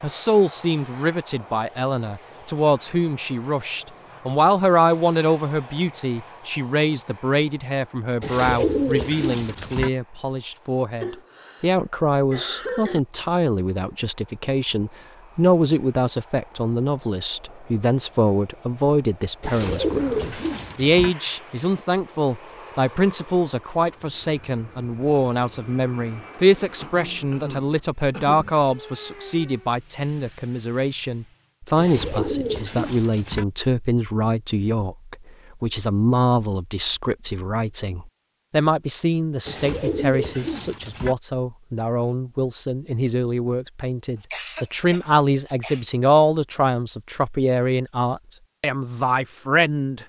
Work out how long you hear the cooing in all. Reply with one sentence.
The cooing can be heard for 7 seconds in total.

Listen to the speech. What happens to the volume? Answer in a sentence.
The loudness of the speech stays about the same.